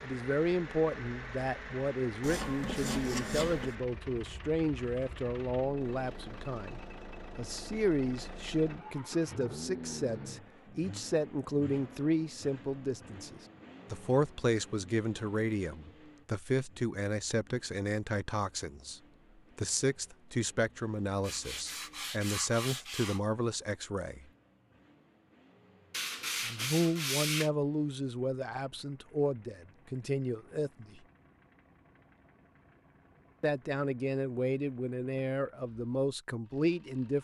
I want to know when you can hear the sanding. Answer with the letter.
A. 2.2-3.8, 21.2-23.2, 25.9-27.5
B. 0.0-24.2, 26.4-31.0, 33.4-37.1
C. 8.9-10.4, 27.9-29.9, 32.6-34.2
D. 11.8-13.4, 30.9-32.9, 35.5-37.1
A.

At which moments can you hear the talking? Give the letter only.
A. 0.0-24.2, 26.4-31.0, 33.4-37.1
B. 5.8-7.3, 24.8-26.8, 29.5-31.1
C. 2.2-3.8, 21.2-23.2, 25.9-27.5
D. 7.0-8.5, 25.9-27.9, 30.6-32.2
A.